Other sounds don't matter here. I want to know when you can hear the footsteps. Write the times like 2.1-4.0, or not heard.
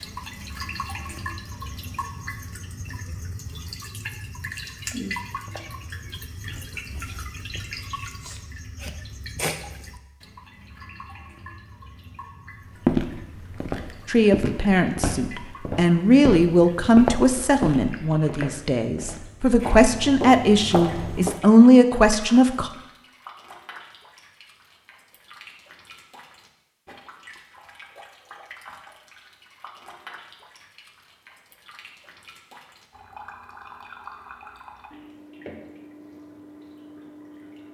12.8-21.4.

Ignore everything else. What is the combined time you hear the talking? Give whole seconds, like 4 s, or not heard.
9 s.